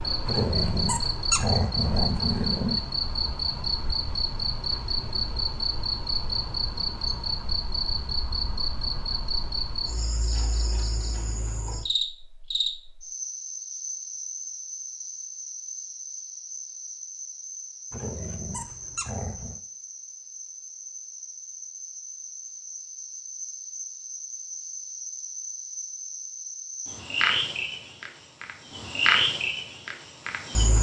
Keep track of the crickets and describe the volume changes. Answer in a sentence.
The volume of the crickets goes down, then up.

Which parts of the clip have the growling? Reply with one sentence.
You can hear the growling from 0.2 to 2.8 s and from 17.9 to 19.6 s.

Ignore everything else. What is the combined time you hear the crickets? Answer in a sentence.
The crickets can be heard for 31 seconds in total.